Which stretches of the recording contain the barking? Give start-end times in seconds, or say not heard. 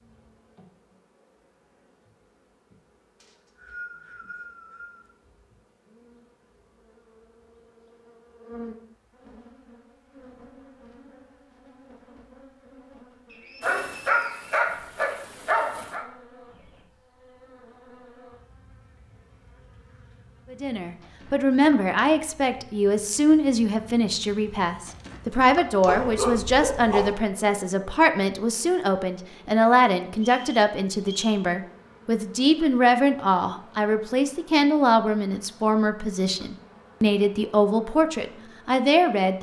13.6-16.1, 25.9-27.1.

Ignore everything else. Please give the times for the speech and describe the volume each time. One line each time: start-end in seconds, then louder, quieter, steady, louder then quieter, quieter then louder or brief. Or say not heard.
20.5-39.3 steady.